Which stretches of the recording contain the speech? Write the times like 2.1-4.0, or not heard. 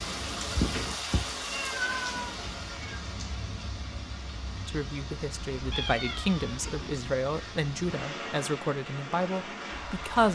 4.7-10.3.